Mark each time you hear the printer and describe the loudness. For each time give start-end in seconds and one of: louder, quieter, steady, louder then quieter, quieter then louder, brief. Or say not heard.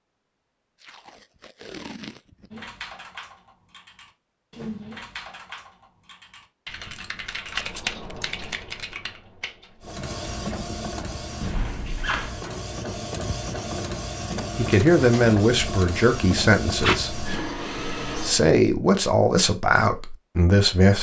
9.8-18.4 steady.